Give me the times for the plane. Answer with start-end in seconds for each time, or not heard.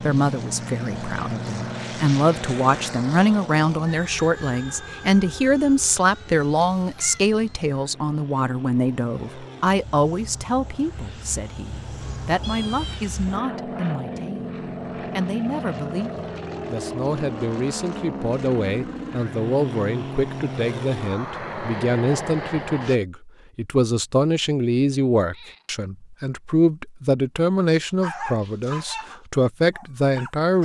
0.0-23.0.